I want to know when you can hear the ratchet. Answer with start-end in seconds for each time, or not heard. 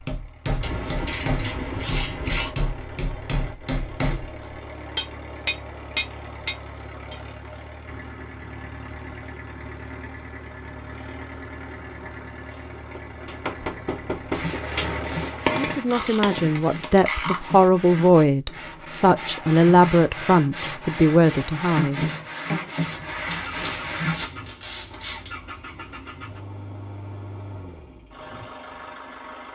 0.6-2.5, 15.8-17.4, 22.9-25.4.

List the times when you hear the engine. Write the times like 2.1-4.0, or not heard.
0.0-15.6, 22.9-29.5.